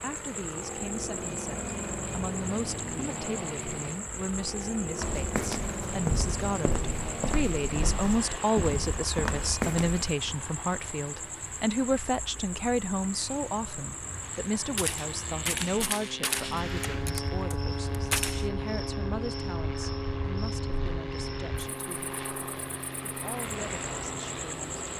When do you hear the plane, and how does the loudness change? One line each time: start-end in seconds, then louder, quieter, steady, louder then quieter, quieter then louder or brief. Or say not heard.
0.0-24.9 quieter then louder.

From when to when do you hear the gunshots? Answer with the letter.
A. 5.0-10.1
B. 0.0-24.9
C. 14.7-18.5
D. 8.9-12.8
C.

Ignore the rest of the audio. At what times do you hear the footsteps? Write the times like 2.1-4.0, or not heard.
5.0-10.1.